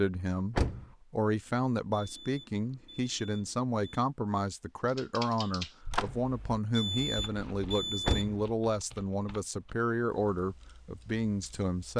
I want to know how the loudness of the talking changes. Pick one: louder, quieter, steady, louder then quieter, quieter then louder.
steady.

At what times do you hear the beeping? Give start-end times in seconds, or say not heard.
1.9-4.0, 6.7-8.3.